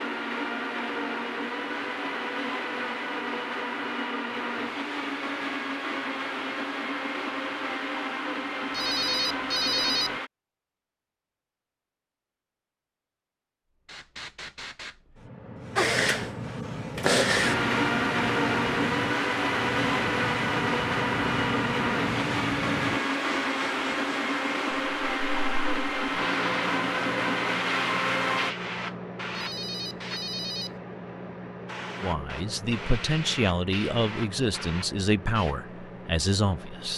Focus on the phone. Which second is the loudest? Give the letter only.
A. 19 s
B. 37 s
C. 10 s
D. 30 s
C.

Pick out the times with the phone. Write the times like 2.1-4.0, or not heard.
8.7-10.2, 29.4-30.8.